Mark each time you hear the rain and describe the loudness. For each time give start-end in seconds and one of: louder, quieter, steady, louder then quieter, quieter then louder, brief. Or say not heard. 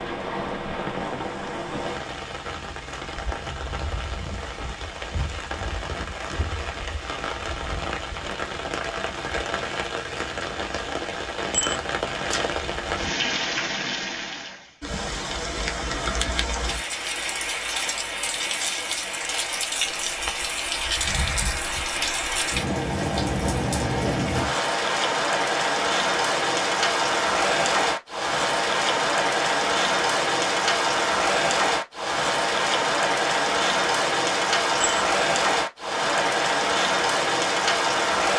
0.0-38.3 louder.